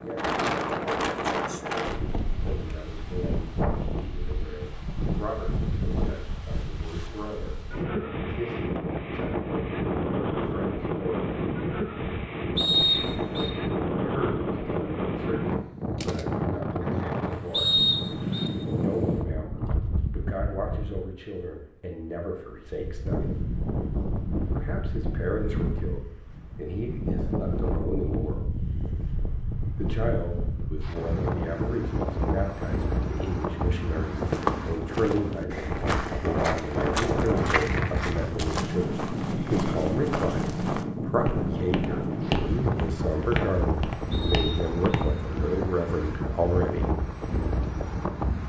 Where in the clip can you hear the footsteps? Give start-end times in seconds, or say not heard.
34.0-45.2.